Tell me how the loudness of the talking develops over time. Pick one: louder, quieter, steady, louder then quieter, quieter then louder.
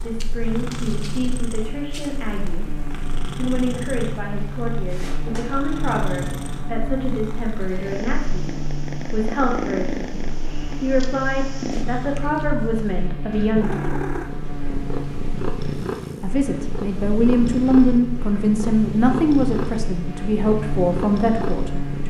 louder.